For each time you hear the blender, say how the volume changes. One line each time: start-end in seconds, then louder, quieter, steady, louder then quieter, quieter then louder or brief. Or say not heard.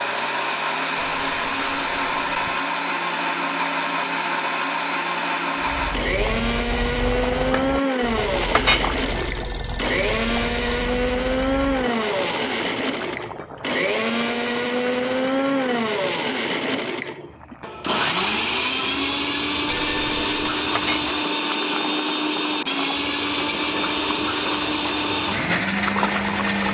0.0-26.7 steady.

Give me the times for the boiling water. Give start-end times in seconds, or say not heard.
5.6-26.7.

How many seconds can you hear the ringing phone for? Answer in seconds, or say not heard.
5 s.